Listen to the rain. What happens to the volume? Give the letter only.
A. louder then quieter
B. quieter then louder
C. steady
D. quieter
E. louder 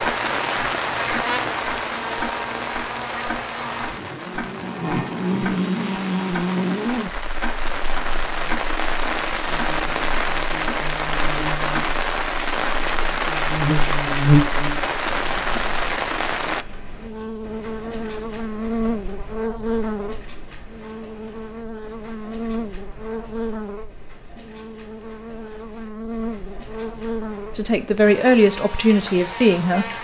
B.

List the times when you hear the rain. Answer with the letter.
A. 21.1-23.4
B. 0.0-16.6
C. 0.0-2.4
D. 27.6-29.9
B.